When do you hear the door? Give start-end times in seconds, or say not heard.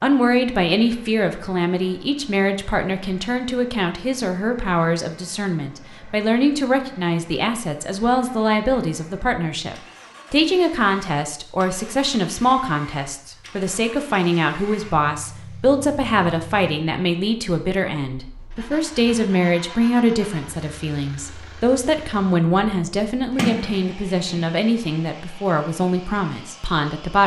23.4-24.6.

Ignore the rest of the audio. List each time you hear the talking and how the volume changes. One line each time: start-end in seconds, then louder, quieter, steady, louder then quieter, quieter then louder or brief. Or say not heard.
0.0-27.2 steady.